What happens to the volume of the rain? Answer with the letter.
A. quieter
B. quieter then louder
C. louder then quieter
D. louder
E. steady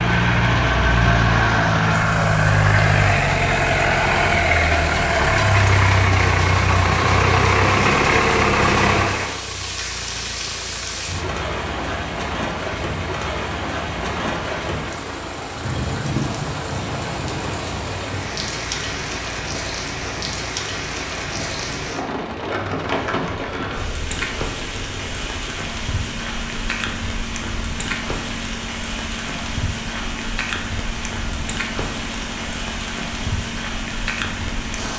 E.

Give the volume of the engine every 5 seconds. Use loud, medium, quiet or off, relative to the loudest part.
loud, loud, quiet, quiet, quiet, quiet, quiet.